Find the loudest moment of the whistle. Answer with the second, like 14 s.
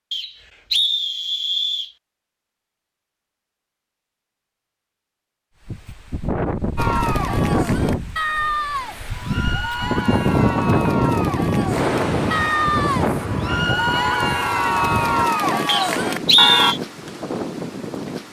16 s.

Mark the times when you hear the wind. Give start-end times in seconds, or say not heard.
5.7-18.2.